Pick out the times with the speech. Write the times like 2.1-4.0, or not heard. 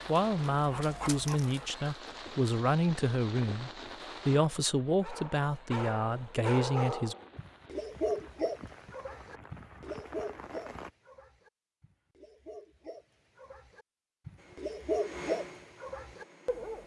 0.1-7.2.